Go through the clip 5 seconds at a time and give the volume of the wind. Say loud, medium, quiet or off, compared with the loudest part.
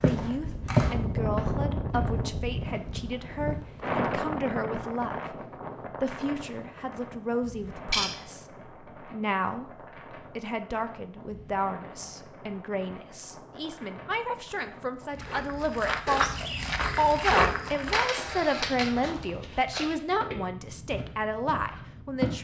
loud, medium, quiet, quiet, quiet.